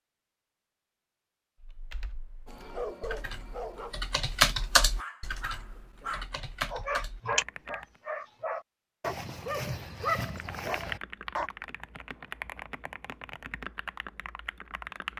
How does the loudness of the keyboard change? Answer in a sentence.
The loudness of the keyboard goes up, then down.